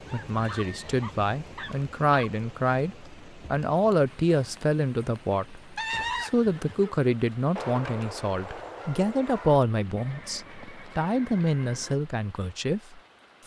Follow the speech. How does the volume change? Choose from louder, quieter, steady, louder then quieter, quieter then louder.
steady.